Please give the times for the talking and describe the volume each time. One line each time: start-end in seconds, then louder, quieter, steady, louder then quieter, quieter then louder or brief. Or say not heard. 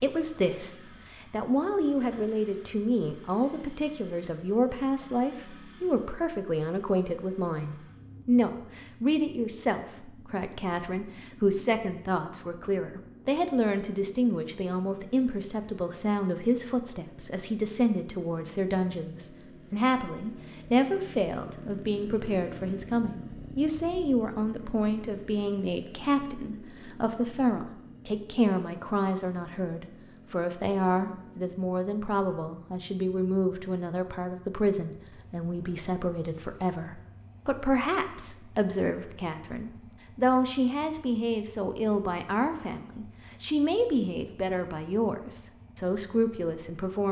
0.0-47.0 steady.